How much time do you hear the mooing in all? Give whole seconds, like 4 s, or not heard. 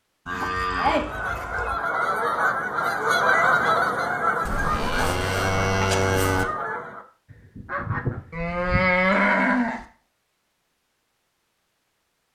5 s.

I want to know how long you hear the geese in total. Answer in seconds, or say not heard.
8 s.